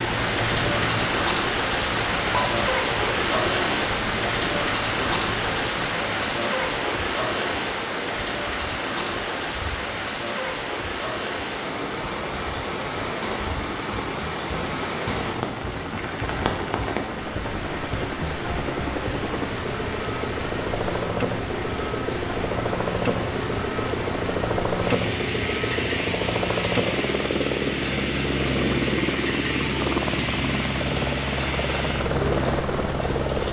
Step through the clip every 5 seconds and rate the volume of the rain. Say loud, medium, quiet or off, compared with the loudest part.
loud, loud, medium, medium, medium, medium, medium.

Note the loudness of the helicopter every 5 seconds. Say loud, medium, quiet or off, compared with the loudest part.
medium, medium, medium, medium, loud, loud, loud.